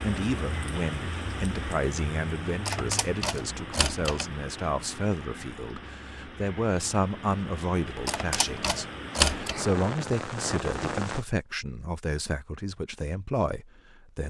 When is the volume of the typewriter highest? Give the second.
9 s.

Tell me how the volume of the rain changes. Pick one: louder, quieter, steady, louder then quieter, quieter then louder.
quieter then louder.